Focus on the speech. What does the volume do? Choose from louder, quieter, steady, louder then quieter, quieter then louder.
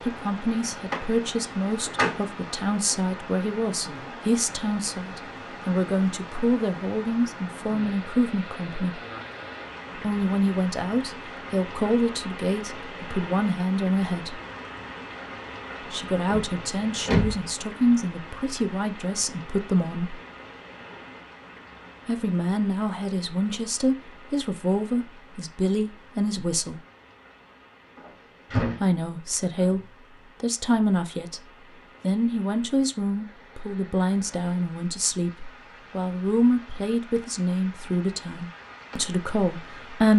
steady.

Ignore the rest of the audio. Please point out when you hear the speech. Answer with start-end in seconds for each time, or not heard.
0.0-9.0, 9.9-14.3, 15.8-20.2, 22.1-26.8, 28.8-40.1.